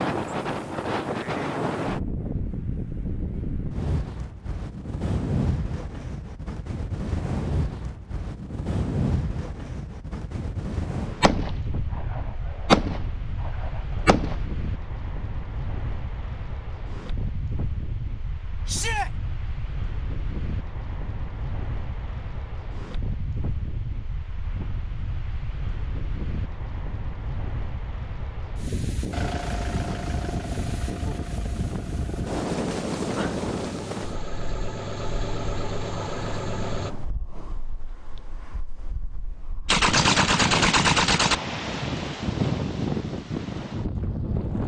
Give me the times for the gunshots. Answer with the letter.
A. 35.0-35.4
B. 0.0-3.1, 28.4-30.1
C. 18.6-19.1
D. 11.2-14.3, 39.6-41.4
D.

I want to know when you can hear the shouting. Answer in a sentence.
The shouting can be heard from 18.6 to 19.1 s.